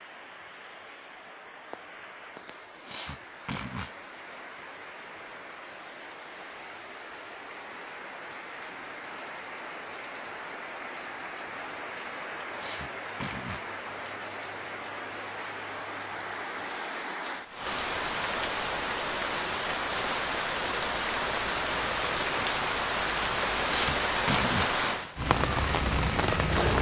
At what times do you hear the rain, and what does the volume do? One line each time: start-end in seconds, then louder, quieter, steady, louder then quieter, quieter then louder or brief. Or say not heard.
0.0-26.7 louder.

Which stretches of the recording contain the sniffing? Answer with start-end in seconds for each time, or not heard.
2.8-4.0, 12.6-13.7, 23.6-24.8.